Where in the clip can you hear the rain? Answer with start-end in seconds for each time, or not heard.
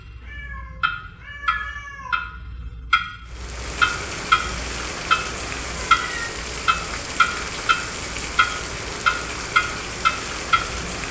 3.2-11.0.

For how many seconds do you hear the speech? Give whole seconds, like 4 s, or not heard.
not heard.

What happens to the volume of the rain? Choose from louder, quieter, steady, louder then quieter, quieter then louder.
steady.